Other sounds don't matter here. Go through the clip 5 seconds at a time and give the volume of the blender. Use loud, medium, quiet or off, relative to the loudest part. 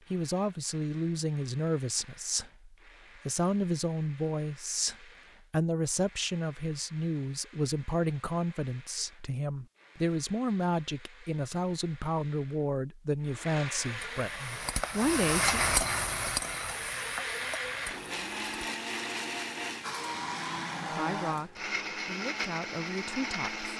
quiet, quiet, medium, loud, loud.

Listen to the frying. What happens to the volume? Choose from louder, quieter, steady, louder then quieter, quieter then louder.
louder then quieter.